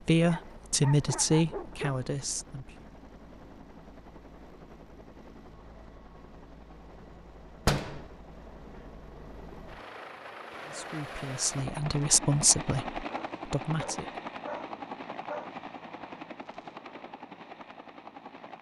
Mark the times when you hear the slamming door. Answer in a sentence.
The slamming door can be heard from 7.7 to 8.1 s.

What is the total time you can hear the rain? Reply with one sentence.
You can't hear the rain here.